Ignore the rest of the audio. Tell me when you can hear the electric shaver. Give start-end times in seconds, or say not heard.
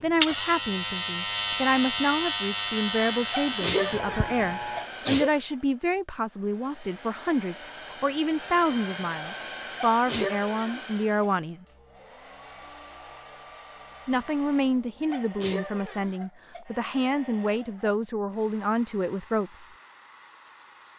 0.0-4.9.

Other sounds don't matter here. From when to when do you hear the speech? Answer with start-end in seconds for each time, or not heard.
0.0-11.7, 14.1-19.7.